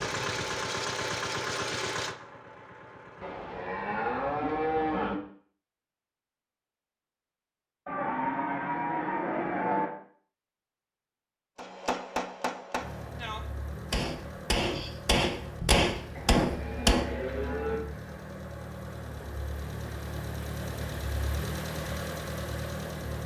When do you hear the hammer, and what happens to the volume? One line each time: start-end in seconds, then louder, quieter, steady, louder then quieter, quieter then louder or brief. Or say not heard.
11.6-17.1 quieter then louder.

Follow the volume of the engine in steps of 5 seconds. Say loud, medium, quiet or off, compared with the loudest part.
loud, off, medium, medium, loud.